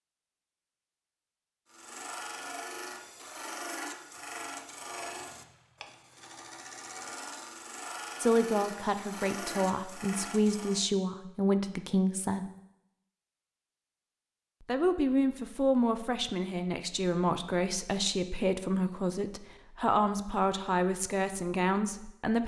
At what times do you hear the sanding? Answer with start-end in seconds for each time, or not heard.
1.7-10.8.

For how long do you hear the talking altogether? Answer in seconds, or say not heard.
12 s.